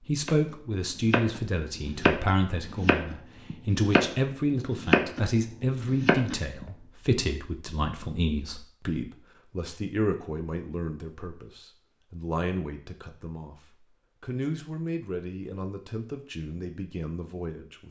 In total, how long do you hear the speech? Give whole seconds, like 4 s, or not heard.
18 s.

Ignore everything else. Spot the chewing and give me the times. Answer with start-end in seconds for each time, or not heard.
not heard.